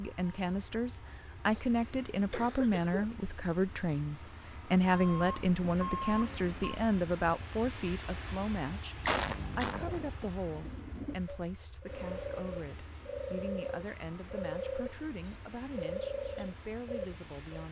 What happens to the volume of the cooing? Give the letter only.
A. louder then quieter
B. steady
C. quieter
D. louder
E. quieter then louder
D.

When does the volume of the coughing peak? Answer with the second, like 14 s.
9 s.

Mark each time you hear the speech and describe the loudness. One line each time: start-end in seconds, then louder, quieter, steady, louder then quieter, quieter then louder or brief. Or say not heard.
0.0-17.6 quieter.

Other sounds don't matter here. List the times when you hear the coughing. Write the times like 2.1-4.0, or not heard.
1.1-3.0, 9.0-10.0.